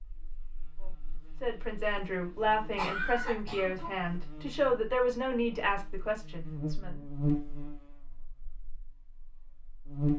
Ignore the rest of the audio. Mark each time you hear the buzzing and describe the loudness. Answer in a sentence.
The buzzing can be heard from 0.0 to 10.1 s, getting louder then quieter.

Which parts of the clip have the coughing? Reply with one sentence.
You can hear the coughing from 2.4 to 4.2 s.